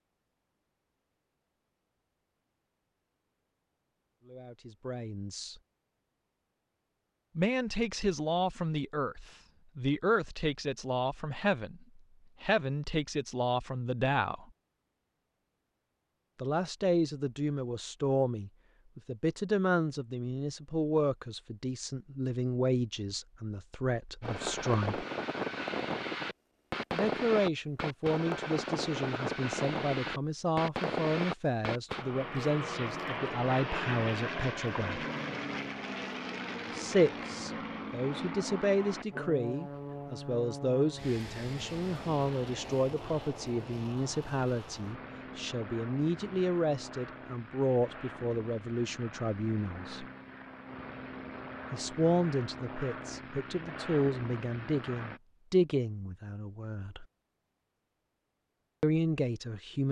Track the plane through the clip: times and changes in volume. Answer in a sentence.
The plane can be heard from 24.2 to 55.2 s, getting quieter.